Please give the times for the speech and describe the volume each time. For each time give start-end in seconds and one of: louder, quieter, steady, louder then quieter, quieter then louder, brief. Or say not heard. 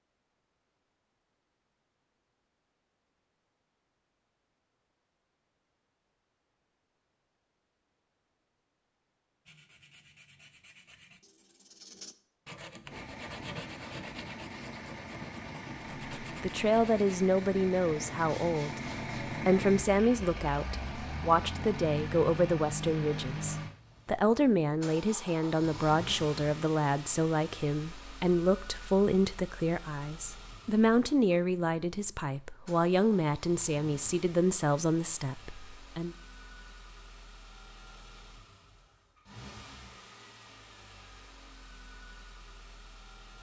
16.2-36.1 steady.